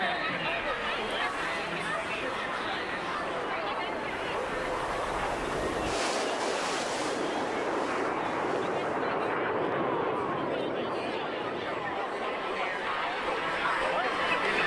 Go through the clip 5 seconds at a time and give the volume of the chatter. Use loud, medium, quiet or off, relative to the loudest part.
loud, medium, loud.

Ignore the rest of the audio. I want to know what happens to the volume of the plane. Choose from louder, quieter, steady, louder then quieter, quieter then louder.
louder then quieter.